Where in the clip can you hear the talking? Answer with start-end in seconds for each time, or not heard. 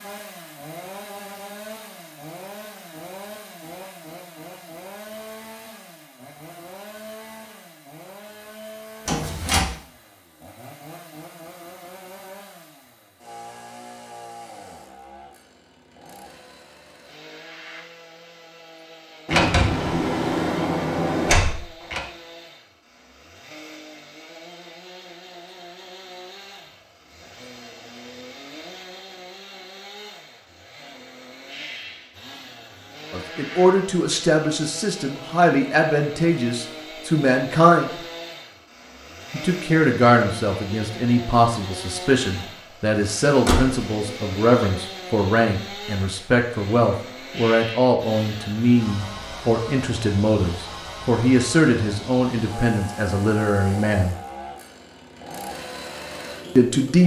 33.1-37.9, 39.3-54.1, 56.5-57.0.